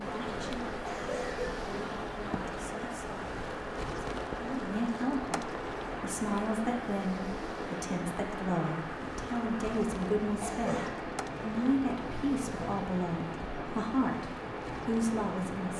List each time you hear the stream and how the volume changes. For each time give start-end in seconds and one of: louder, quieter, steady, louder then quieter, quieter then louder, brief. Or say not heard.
0.0-15.7 steady.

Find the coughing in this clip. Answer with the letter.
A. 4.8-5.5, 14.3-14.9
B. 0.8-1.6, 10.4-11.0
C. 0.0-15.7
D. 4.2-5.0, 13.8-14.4
B.